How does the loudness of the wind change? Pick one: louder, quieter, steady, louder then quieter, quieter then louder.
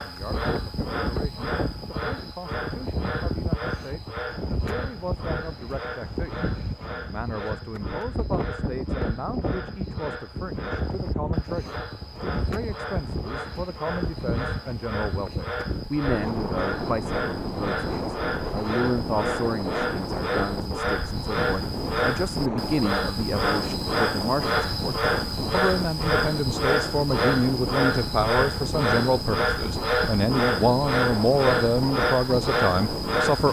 steady.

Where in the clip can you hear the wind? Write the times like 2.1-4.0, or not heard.
0.0-33.4.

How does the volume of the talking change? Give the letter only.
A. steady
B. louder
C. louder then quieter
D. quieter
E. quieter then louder
B.